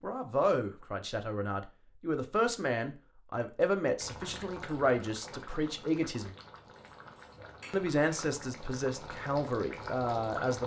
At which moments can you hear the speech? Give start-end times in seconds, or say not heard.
0.0-6.3, 7.7-10.6.